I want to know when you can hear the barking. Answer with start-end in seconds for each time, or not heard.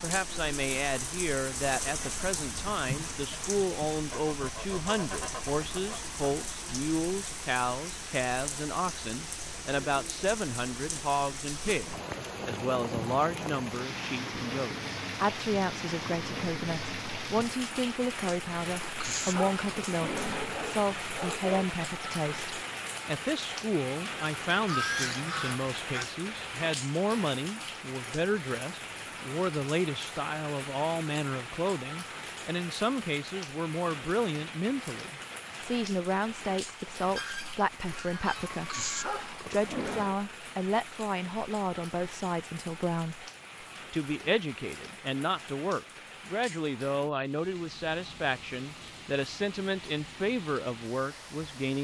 18.8-21.7, 38.5-40.1.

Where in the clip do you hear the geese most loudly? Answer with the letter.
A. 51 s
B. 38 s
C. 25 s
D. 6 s
C.